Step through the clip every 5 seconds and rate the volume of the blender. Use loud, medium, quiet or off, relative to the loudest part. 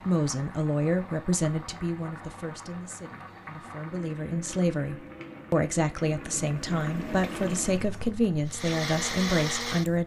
off, loud.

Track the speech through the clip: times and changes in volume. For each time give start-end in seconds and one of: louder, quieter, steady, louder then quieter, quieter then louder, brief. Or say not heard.
0.1-10.0 quieter then louder.